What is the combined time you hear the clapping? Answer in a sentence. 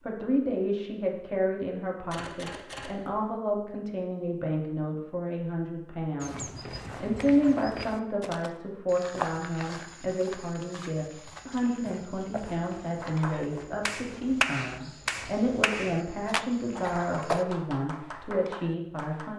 The clapping can be heard for 6 seconds in total.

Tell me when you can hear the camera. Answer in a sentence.
The camera can be heard from 2.1 to 3.2 s.